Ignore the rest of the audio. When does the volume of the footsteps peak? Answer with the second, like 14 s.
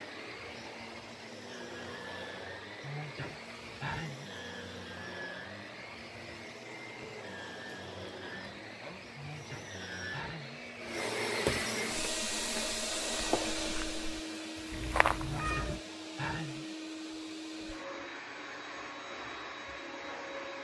15 s.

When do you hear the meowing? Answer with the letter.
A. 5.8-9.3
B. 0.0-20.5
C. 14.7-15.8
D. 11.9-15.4
C.